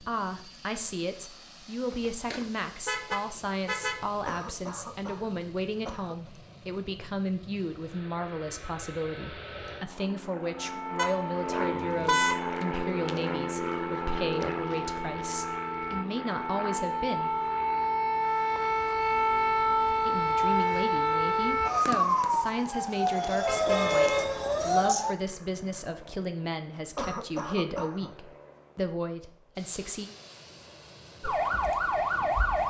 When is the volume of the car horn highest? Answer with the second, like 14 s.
12 s.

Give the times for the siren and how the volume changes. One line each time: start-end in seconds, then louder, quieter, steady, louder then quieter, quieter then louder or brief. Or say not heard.
10.6-25.1 louder
31.2-32.6 brief.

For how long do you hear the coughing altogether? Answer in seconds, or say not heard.
3 s.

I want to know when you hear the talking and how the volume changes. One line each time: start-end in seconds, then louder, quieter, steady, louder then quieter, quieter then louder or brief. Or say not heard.
0.0-17.3 steady
20.1-30.1 steady.